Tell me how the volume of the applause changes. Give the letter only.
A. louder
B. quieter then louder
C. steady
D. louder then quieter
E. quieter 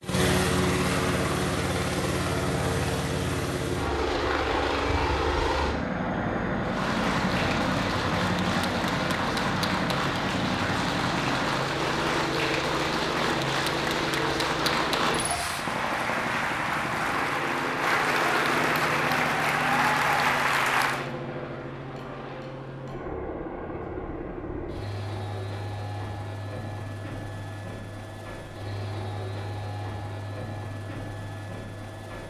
A.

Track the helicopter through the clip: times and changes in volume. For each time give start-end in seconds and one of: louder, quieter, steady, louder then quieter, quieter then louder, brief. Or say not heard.
0.0-32.2 quieter.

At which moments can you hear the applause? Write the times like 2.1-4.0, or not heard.
6.6-21.1.